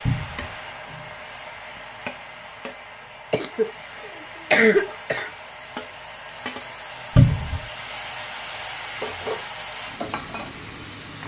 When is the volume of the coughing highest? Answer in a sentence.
The volume of the coughing peaks at 5 seconds.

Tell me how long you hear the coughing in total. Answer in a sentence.
You can hear the coughing for 2 seconds altogether.